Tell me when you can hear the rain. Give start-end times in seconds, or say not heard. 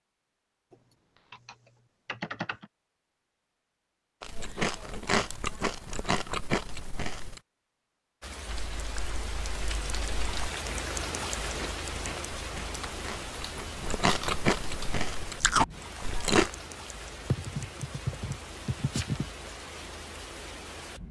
8.2-21.0.